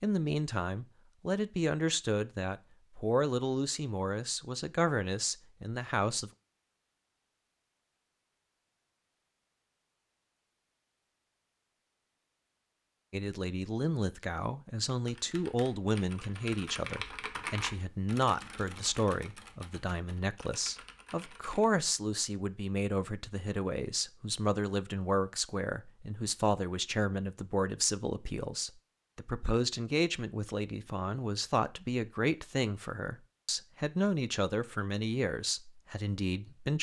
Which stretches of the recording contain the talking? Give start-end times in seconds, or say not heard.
0.0-6.3, 13.1-36.7.